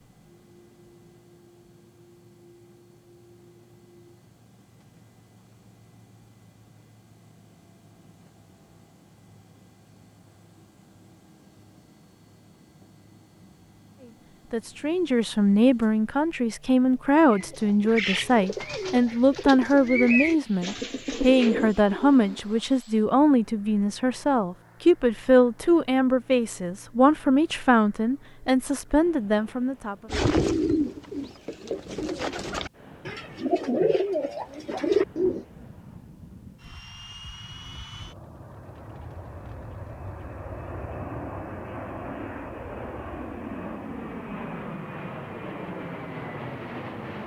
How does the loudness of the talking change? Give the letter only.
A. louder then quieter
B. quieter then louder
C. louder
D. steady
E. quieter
D.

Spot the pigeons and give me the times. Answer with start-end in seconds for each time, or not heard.
17.3-22.6, 30.1-35.5.